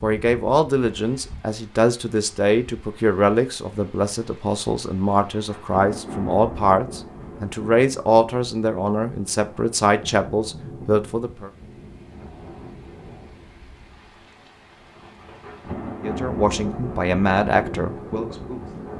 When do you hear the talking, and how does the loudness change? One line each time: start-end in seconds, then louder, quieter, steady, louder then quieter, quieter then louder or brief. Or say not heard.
0.0-11.5 steady
16.0-18.8 brief.